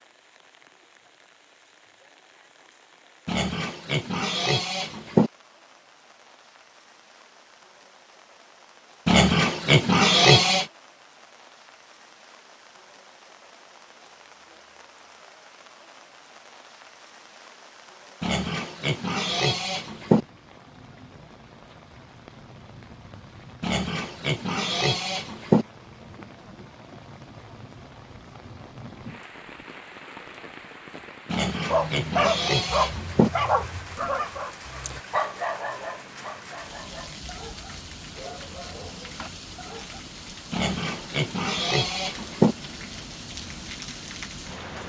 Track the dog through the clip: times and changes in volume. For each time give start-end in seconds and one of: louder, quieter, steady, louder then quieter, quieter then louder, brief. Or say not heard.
31.6-40.0 quieter.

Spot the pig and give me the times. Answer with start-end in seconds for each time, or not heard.
3.2-5.3, 9.1-10.7, 18.2-20.2, 23.6-25.6, 31.3-33.3, 40.5-42.5.